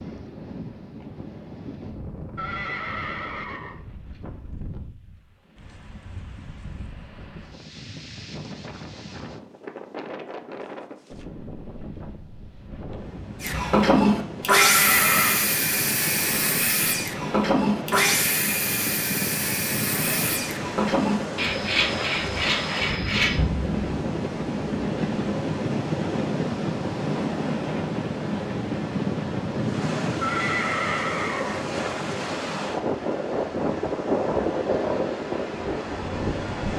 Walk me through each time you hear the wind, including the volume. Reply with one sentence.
The wind can be heard from 0.0 to 36.7 s, getting louder.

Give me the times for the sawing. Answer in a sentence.
The sawing can be heard from 13.4 to 23.4 s.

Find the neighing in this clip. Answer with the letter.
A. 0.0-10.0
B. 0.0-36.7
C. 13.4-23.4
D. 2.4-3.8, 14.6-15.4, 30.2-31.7
D.